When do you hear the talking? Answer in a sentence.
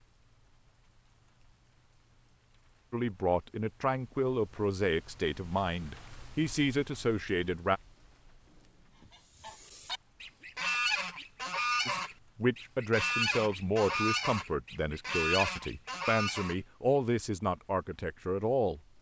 You can hear the talking from 2.9 to 7.8 s and from 11.8 to 18.8 s.